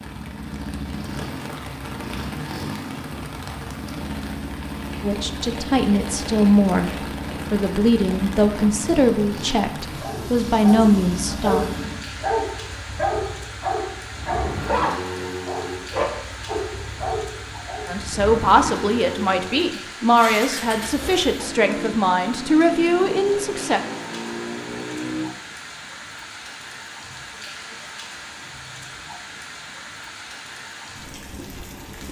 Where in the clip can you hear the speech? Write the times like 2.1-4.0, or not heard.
5.0-11.7, 17.9-23.8.